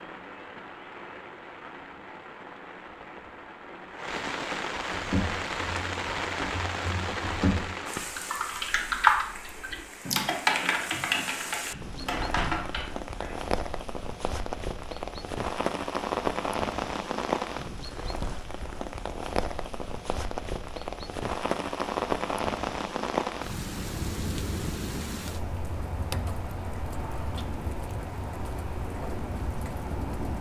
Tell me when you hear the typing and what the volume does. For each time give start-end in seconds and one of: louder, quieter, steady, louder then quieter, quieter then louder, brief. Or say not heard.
4.9-13.3 louder then quieter.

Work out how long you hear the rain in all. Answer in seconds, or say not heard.
30 s.